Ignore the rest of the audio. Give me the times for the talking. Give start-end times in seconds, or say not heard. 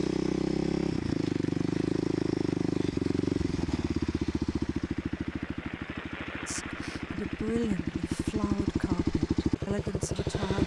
6.5-10.6.